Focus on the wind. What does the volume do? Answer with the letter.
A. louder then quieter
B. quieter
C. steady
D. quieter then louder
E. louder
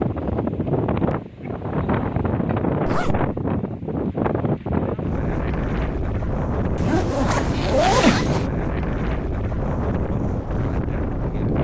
C.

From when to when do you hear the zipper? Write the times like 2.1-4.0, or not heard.
2.9-3.3, 6.8-8.5.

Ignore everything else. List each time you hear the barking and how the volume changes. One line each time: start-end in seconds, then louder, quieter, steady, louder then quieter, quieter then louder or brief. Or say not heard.
not heard.